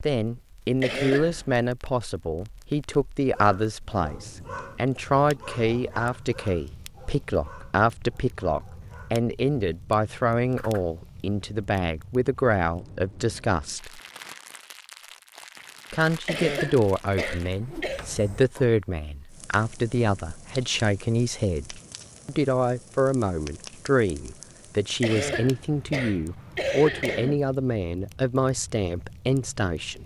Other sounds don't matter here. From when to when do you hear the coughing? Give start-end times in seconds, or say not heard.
0.8-1.5, 16.2-18.1, 25.0-27.4.